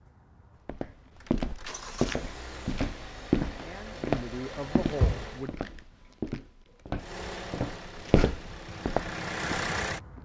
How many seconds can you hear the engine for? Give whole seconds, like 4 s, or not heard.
9 s.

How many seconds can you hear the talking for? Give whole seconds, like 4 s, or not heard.
2 s.